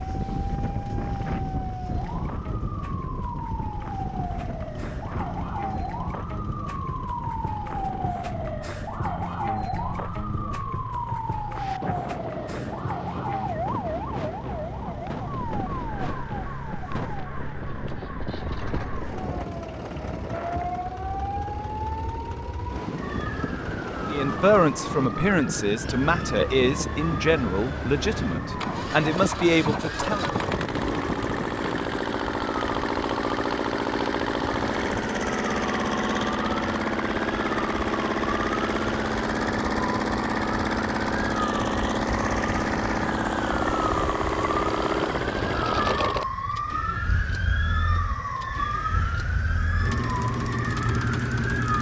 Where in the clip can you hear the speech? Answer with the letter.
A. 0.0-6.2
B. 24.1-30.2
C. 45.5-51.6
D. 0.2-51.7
B.